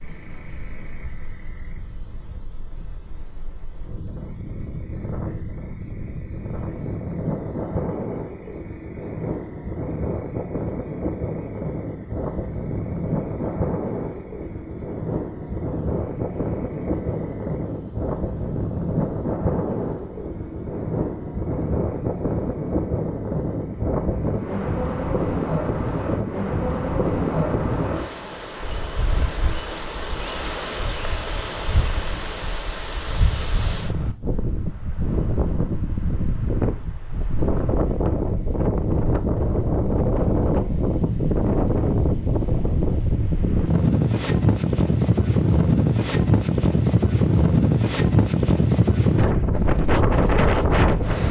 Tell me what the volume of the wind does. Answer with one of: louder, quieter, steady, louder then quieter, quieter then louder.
louder.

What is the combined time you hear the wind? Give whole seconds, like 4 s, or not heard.
51 s.